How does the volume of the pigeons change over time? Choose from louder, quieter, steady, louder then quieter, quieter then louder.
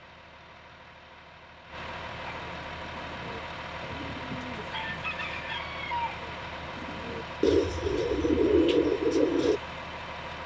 louder.